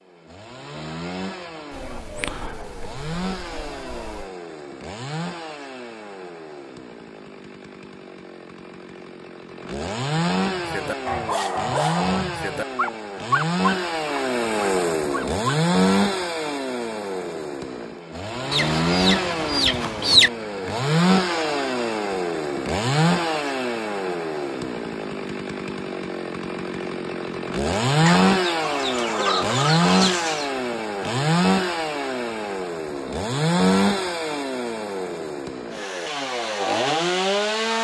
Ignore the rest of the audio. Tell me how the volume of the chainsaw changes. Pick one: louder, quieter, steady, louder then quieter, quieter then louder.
louder.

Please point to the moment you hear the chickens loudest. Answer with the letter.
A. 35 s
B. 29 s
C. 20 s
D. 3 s
C.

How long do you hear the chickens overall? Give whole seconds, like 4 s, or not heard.
7 s.